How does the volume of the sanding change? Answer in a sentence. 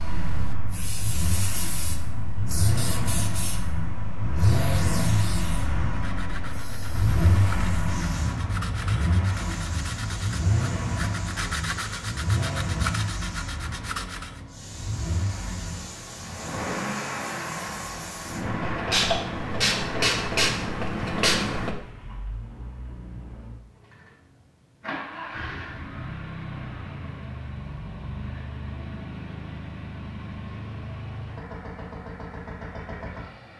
The loudness of the sanding goes up.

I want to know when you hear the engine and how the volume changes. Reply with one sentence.
You can hear the engine from 0.0 to 33.5 s, getting quieter.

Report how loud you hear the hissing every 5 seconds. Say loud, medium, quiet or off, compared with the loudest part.
quiet, quiet, quiet, medium, loud, off, off.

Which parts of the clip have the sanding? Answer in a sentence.
You can hear the sanding from 5.8 to 14.4 s.